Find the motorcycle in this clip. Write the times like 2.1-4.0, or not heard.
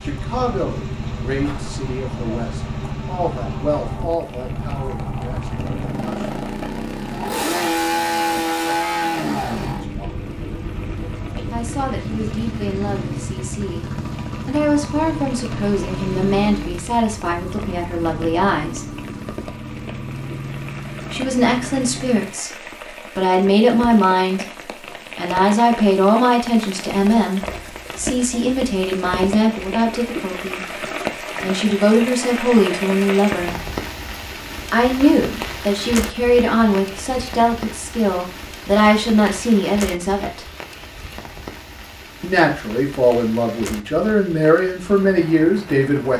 0.0-22.4.